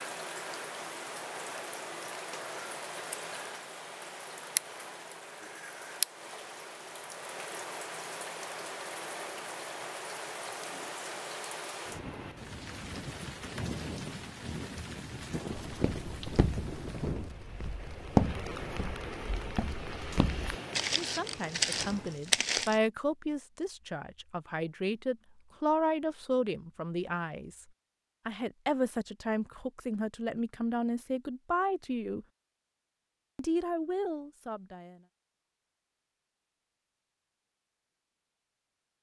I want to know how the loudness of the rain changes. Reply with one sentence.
The loudness of the rain stays about the same.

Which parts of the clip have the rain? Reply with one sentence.
You can hear the rain from 0.0 to 22.3 s.